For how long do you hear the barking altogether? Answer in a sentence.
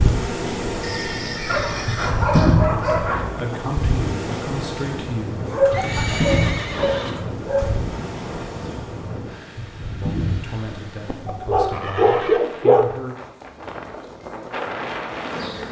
The barking can be heard for 6 seconds in total.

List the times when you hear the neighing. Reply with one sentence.
The neighing can be heard from 0.8 to 2.5 s, from 5.7 to 7.2 s and from 10.9 to 12.4 s.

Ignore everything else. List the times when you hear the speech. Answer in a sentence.
You can hear the speech from 2.7 to 5.5 s and from 9.8 to 13.2 s.